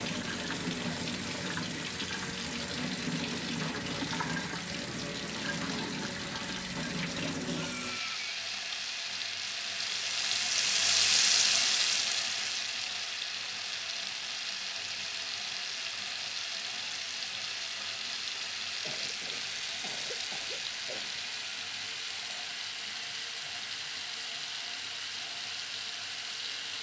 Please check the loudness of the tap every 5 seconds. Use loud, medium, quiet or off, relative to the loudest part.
medium, medium, loud, medium, medium, medium.